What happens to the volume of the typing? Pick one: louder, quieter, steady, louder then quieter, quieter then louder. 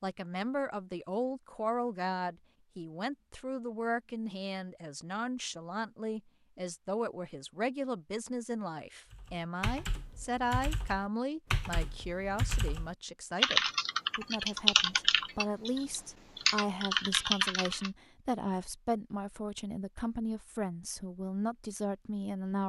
louder.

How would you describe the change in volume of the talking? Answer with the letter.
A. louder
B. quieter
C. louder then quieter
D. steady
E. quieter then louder
D.